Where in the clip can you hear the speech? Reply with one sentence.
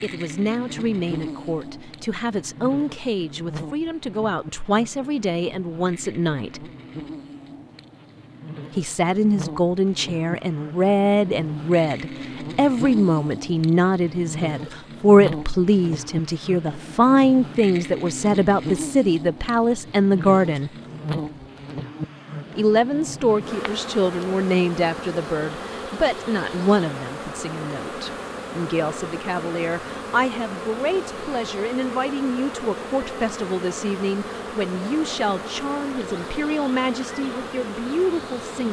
The speech can be heard from 0.0 to 6.7 s, from 8.8 to 20.7 s and from 22.6 to 38.6 s.